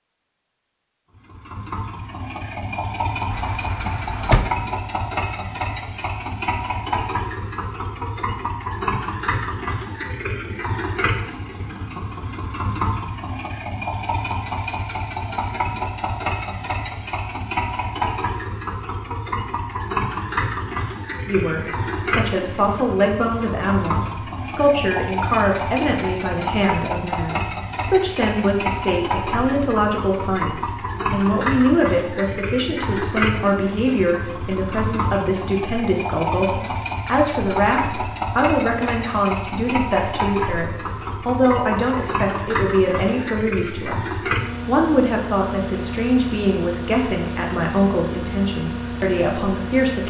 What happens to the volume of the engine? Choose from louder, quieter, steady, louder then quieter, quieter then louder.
steady.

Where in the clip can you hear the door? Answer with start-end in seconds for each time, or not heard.
3.3-4.7.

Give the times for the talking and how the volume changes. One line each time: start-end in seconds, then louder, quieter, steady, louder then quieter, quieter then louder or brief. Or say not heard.
21.2-50.0 steady.